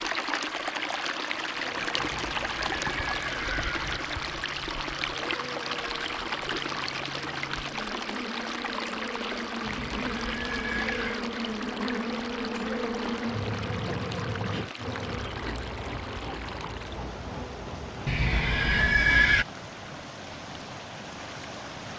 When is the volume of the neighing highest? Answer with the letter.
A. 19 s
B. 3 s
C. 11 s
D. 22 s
A.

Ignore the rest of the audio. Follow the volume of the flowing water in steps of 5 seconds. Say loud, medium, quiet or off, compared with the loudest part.
loud, loud, medium, medium, medium.